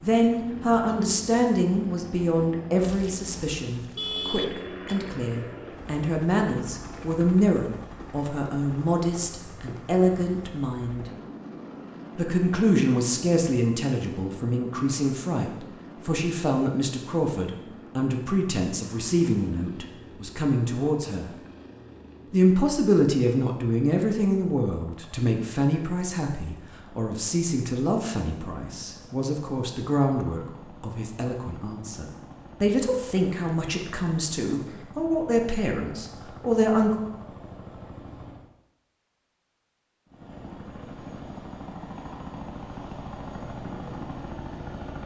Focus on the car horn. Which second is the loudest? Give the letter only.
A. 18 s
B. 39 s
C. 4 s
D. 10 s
C.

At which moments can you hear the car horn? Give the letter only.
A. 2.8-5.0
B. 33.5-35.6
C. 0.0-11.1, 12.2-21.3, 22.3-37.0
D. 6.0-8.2
A.